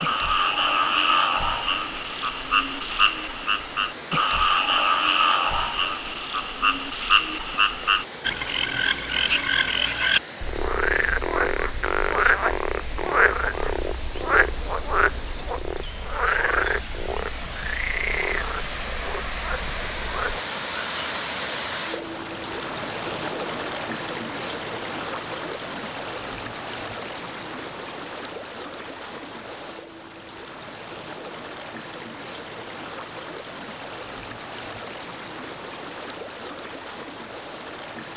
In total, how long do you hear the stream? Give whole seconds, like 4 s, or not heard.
38 s.